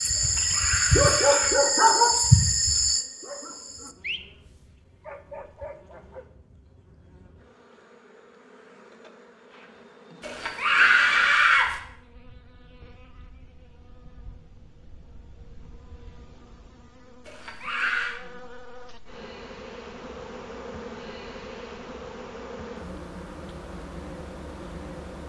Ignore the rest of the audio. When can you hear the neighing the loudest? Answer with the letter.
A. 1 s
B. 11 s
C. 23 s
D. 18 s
B.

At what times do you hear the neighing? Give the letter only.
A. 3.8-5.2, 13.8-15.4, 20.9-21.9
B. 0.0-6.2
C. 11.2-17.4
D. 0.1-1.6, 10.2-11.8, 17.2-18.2
D.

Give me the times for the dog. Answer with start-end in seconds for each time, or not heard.
0.0-6.2.